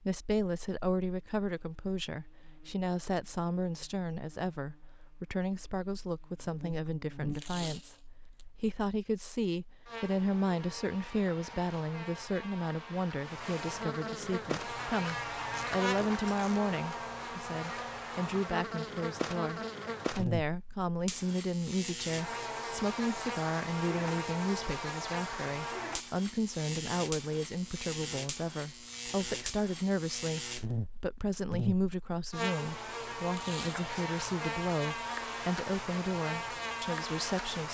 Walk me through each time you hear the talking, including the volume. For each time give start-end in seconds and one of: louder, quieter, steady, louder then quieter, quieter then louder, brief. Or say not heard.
0.0-37.6 steady.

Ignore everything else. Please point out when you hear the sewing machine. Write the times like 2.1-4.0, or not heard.
not heard.